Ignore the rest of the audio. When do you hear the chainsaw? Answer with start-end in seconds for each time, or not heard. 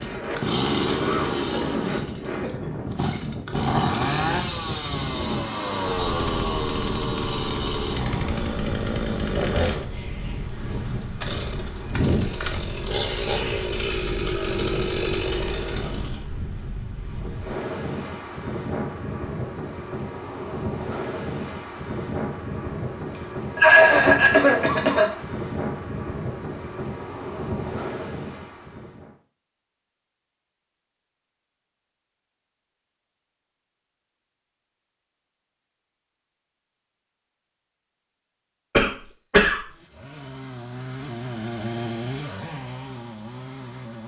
0.0-16.2, 39.7-44.0.